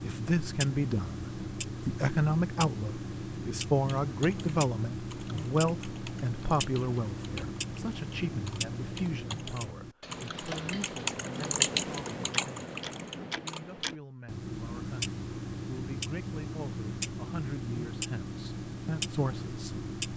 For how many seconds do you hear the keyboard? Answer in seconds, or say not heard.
10 s.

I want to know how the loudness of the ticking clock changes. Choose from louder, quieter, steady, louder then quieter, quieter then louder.
steady.